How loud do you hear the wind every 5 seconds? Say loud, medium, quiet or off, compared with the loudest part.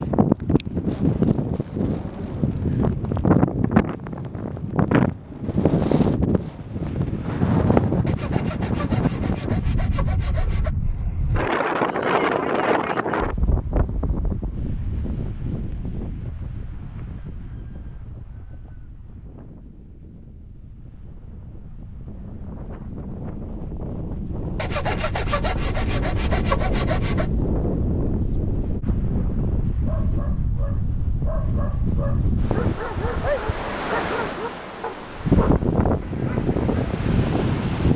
loud, loud, loud, quiet, quiet, medium, medium, loud.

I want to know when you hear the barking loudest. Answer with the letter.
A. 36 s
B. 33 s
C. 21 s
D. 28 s
B.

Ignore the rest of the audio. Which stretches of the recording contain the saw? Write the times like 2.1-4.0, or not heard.
8.1-10.7, 24.6-27.3.